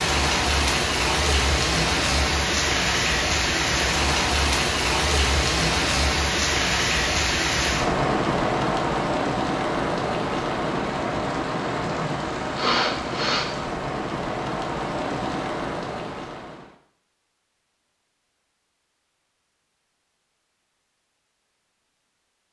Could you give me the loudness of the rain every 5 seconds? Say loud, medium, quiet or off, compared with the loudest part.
loud, loud, medium, medium, off.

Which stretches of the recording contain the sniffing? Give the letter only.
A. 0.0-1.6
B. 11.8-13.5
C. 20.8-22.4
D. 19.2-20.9
B.